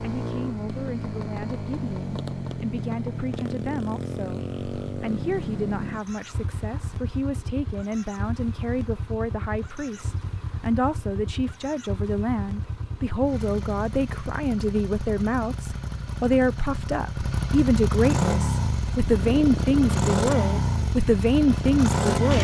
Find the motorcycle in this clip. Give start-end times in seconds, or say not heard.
0.0-22.3.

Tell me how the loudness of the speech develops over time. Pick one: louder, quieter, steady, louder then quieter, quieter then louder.
louder.